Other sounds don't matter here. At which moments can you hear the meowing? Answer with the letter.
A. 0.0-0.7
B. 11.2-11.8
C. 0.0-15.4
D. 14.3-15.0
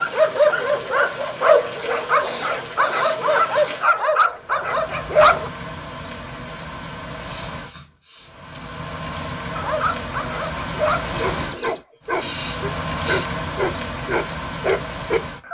B.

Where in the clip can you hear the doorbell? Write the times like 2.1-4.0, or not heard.
not heard.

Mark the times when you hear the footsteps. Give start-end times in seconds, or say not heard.
not heard.